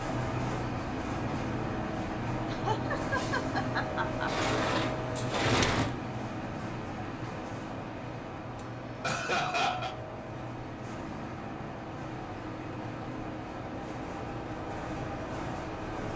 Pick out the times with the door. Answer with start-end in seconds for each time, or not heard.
4.2-6.0.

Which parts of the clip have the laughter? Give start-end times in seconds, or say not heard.
2.5-4.3, 8.6-9.9.